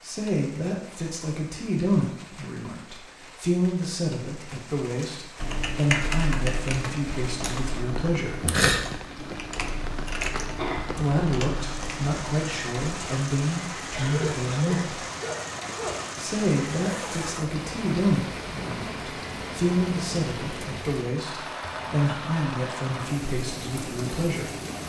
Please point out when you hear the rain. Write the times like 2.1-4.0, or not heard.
0.0-24.8.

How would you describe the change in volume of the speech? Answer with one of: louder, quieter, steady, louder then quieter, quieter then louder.
steady.